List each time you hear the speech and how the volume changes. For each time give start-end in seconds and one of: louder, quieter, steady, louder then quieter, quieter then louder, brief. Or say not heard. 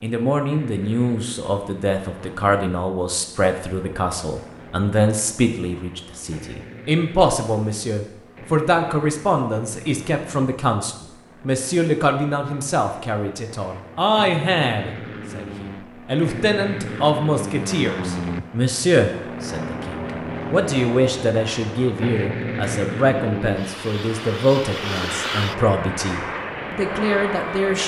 0.0-27.8 steady.